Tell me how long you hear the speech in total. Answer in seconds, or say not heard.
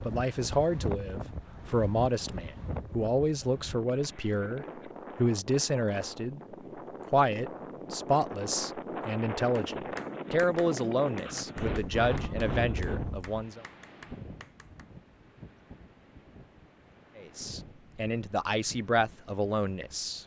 16 s.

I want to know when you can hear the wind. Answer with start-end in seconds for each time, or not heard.
0.0-20.2.